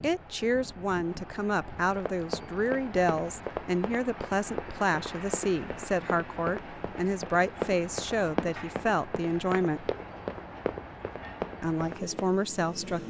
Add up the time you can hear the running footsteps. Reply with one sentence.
You can hear the running footsteps for 10 seconds altogether.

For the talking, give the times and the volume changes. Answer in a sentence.
The talking can be heard from 0.0 to 9.9 s, at a steady volume; and briefly from 11.6 to 13.0 s.